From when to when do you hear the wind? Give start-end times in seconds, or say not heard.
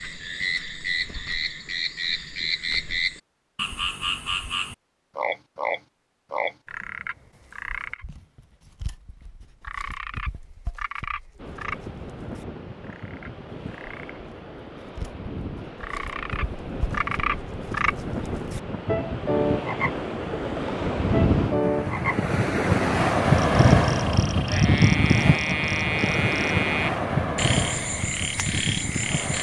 11.3-29.3.